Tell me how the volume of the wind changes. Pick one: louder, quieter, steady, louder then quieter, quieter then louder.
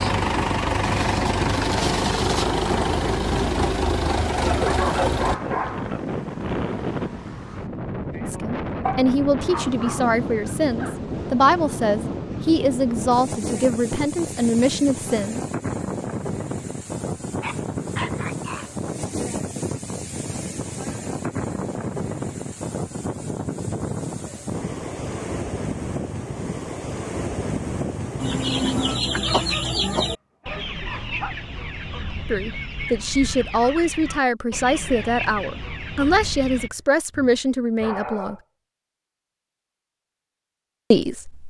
steady.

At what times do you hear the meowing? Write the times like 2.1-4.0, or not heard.
not heard.